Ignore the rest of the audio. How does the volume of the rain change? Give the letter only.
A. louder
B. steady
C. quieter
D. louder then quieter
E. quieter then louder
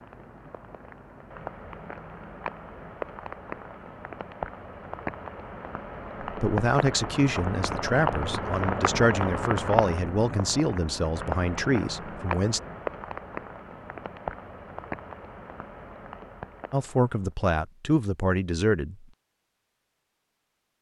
D.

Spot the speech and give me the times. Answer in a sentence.
You can hear the speech from 6.2 to 12.6 s and from 16.7 to 18.9 s.